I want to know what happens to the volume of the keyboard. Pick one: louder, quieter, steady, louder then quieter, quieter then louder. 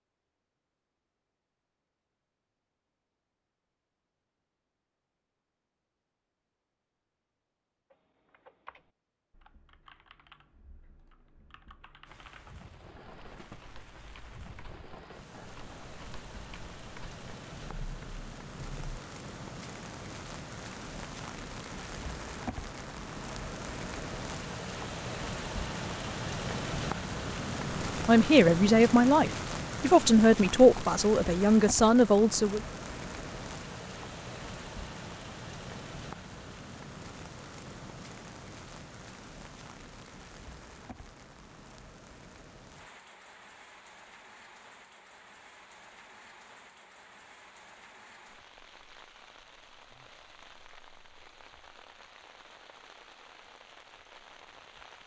louder.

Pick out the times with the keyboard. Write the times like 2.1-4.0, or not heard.
7.9-19.0.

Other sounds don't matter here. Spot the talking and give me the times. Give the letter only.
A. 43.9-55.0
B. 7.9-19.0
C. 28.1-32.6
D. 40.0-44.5
C.